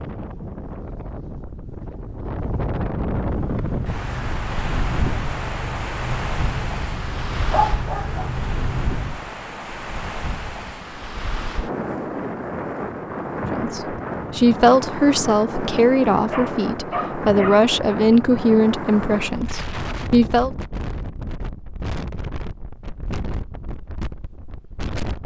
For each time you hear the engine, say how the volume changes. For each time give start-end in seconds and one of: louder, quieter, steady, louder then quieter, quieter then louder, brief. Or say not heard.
3.3-9.3 steady.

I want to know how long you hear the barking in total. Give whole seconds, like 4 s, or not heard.
3 s.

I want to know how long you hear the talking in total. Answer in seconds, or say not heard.
7 s.